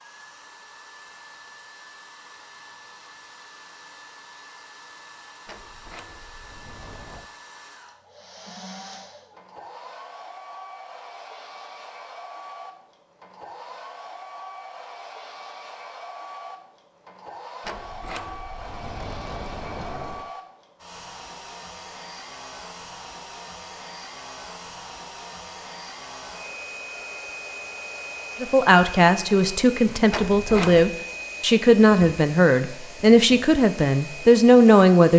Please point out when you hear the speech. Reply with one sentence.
You can hear the speech from 28.4 to 35.1 s.